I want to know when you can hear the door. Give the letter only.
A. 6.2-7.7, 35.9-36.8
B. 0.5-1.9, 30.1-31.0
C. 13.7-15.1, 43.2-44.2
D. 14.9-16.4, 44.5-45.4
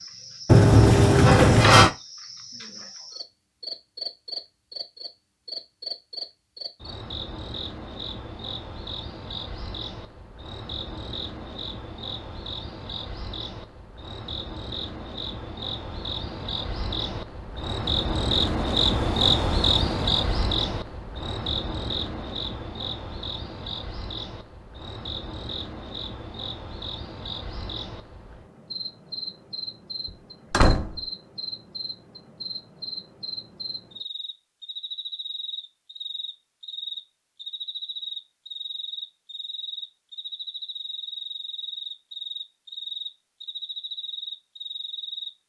B.